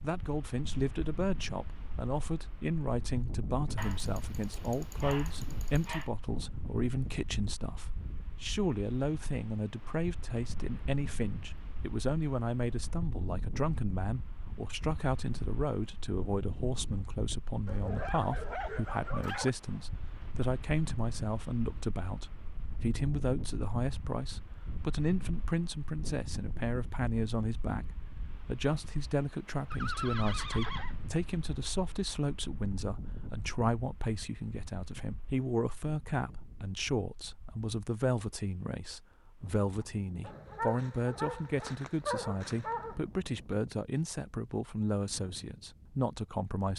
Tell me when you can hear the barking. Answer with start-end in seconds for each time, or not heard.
3.8-6.1, 17.6-19.5, 40.2-43.0.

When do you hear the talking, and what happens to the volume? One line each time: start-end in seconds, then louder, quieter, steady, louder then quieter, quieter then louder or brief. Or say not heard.
0.0-46.7 steady.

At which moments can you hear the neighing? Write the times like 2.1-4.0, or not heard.
29.7-30.9.